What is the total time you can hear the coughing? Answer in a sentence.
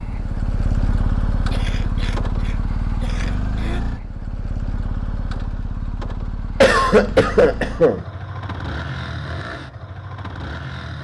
You can hear the coughing for 4 seconds altogether.